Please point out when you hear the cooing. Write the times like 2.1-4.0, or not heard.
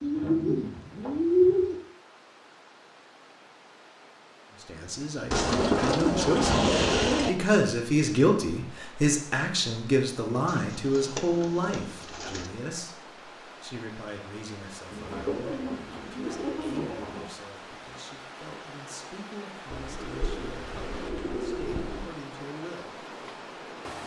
0.0-1.8, 5.3-7.3, 10.4-12.5, 14.9-17.3, 19.7-22.1.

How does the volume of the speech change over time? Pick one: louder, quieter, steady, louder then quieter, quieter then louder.
quieter.